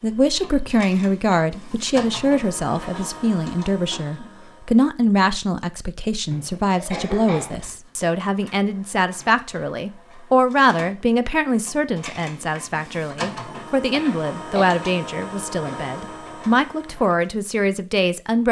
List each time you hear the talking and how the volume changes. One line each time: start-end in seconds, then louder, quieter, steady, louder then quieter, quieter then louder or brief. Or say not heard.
0.0-18.4 steady.